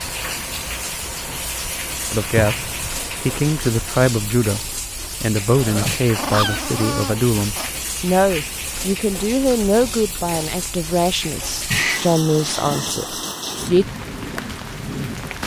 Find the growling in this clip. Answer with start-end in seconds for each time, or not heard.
2.4-3.0, 5.5-7.7, 11.7-12.8.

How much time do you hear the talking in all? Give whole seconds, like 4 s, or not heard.
11 s.